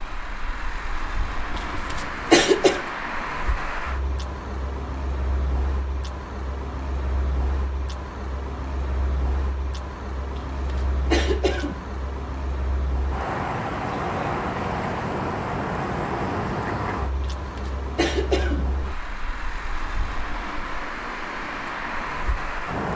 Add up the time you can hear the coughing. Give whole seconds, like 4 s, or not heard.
4 s.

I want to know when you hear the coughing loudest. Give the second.
2 s.